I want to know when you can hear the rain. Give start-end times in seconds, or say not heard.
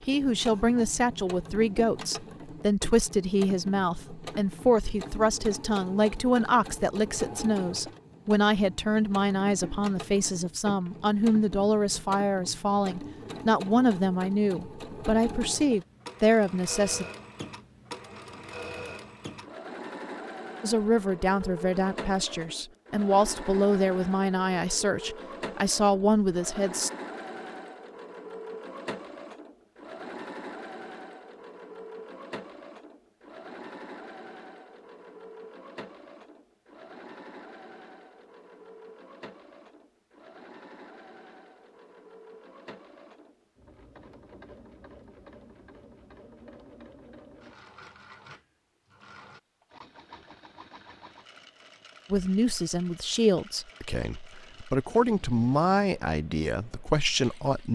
not heard.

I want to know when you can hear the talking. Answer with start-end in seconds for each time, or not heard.
0.1-17.1, 20.6-26.9, 52.1-57.6.